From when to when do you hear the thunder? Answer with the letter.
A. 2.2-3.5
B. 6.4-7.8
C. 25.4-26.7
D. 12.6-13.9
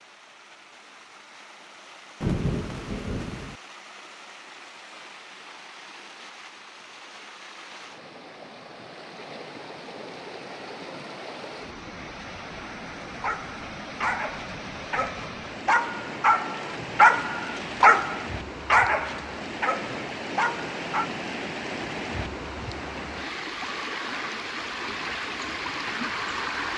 A.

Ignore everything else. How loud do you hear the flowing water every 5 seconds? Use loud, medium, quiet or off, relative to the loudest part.
quiet, quiet, medium, medium, loud, loud.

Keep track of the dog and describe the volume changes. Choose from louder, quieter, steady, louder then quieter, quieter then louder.
louder then quieter.